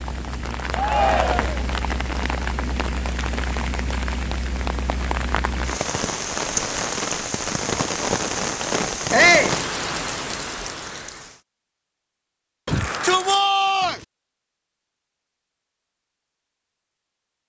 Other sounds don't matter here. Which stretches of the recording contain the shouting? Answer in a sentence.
You can hear the shouting from 0.7 to 1.6 s, from 9.1 to 9.6 s and from 12.7 to 14.0 s.